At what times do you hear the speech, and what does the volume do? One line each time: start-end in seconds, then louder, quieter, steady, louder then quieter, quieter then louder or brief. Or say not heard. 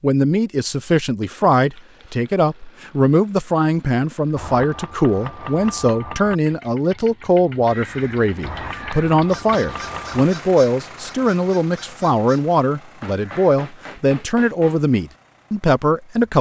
0.0-16.3 steady.